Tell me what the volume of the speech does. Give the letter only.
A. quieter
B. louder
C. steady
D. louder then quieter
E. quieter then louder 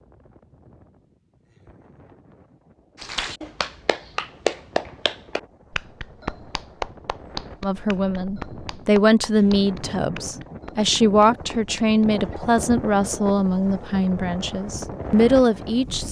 C.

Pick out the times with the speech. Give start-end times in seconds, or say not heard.
7.6-16.0.